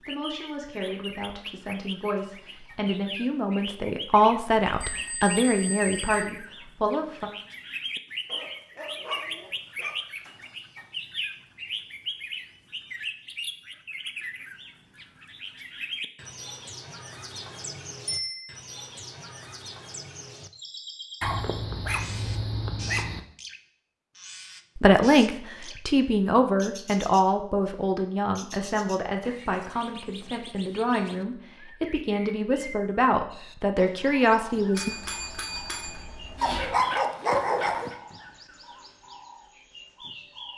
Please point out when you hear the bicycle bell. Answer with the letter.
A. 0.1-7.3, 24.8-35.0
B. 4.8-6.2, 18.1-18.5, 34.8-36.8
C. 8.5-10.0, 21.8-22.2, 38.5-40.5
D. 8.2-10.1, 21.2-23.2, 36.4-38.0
B.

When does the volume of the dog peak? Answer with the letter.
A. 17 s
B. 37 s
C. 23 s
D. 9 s
B.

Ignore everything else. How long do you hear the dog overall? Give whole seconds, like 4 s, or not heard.
5 s.